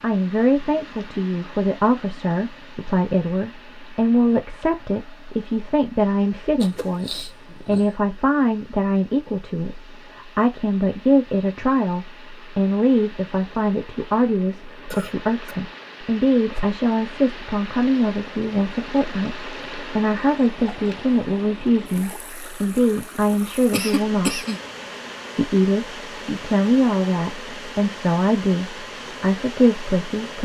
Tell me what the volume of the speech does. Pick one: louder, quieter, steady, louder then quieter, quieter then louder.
steady.